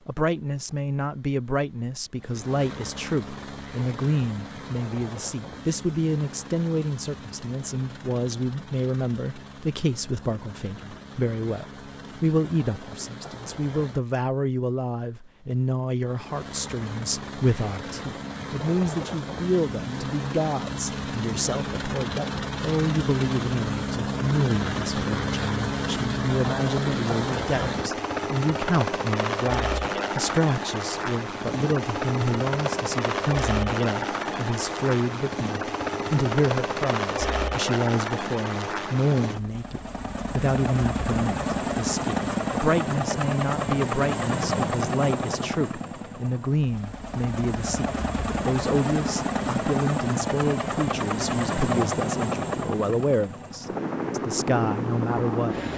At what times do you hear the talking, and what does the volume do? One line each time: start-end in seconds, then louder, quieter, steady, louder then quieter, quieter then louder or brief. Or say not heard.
0.1-55.5 steady.